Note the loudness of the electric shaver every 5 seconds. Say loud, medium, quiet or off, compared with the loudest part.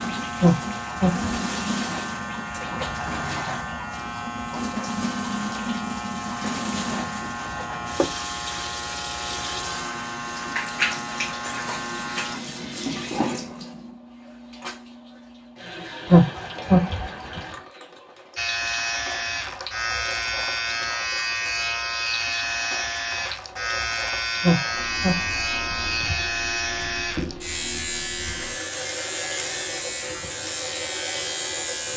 medium, medium, medium, loud, loud, loud, loud.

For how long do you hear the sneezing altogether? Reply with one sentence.
You can hear the sneezing for 4 seconds altogether.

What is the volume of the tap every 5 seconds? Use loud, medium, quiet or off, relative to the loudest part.
loud, loud, loud, medium, medium, medium, medium.